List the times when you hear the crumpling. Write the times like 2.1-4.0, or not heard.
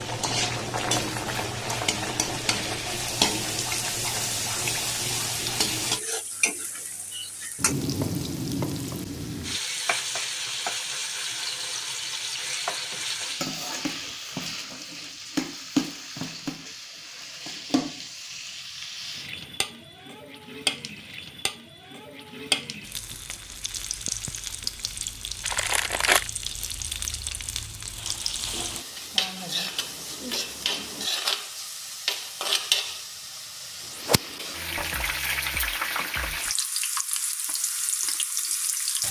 25.4-26.3.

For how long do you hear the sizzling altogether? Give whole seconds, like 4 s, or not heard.
39 s.